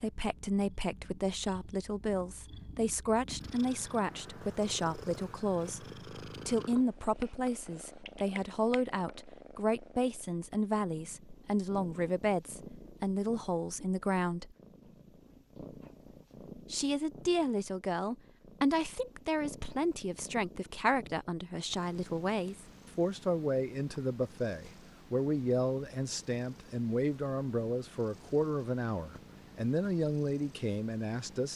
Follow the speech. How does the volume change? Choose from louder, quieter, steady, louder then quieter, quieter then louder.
steady.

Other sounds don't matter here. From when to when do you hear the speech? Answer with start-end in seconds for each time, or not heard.
0.0-14.6, 16.7-31.5.